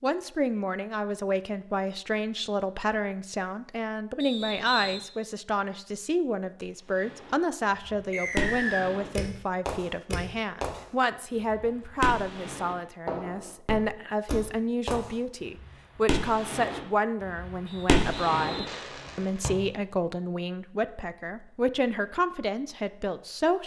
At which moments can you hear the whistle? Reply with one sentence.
The whistle can be heard from 4.2 to 5.0 s, from 8.1 to 8.8 s and from 17.6 to 19.0 s.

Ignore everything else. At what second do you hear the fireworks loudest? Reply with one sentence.
The volume of the fireworks peaks at 18 seconds.